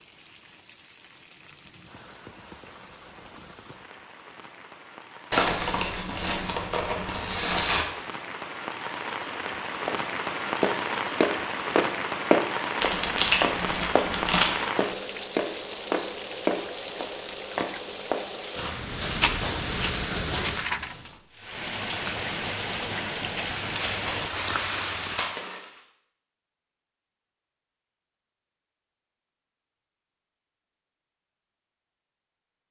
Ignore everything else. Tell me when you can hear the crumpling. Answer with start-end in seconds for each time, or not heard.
5.3-7.8, 12.8-14.6, 23.4-25.8.